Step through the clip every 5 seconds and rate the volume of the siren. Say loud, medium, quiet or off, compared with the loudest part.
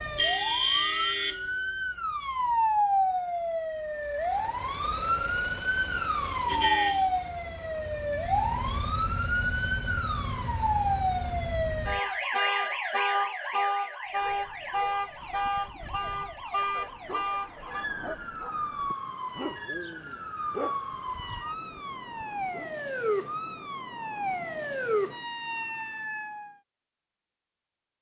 loud, loud, loud, medium, medium, medium.